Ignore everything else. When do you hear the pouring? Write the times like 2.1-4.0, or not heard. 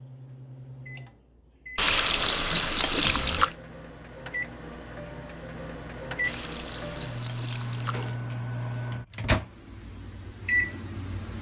1.8-3.5, 6.2-8.2.